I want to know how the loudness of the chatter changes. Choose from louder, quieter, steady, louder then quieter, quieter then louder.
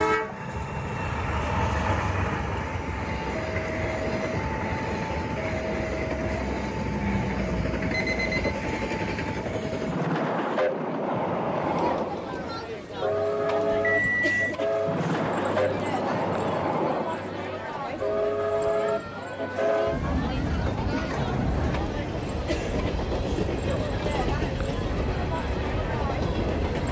steady.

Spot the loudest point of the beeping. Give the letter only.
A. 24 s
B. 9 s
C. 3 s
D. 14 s
D.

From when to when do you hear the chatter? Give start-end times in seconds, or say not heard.
11.4-26.8.